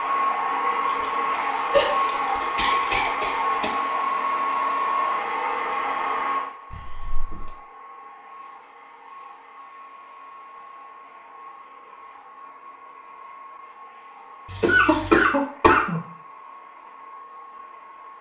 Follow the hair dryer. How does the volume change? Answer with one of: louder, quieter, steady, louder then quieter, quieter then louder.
quieter.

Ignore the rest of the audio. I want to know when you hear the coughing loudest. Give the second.
15 s.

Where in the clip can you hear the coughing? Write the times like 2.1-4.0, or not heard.
1.7-3.7, 6.7-7.5, 14.6-16.0.